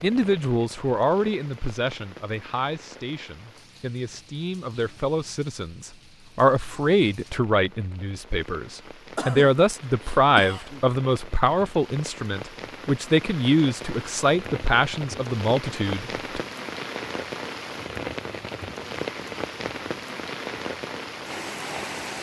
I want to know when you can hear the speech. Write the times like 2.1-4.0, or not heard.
0.0-16.4.